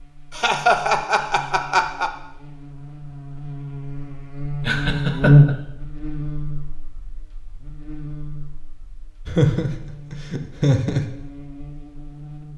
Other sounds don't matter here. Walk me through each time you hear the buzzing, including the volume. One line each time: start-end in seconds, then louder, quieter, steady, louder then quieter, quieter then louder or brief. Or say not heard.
0.0-12.5 louder then quieter.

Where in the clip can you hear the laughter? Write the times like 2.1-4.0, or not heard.
0.3-2.1, 4.6-5.5, 9.2-11.1.